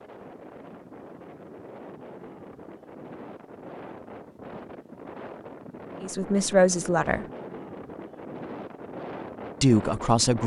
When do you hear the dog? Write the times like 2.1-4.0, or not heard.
not heard.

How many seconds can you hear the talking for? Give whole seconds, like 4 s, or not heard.
2 s.